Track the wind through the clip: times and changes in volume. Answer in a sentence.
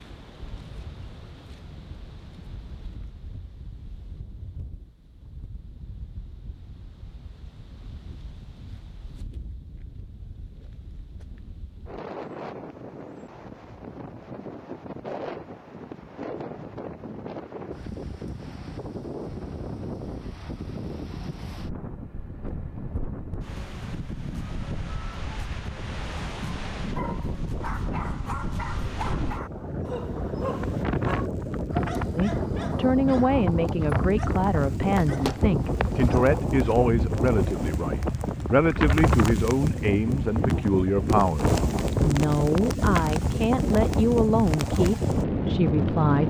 The wind can be heard from 0.0 to 46.2 s, getting louder.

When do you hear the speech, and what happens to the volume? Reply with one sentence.
You can hear the speech from 32.1 to 46.2 s, at a steady volume.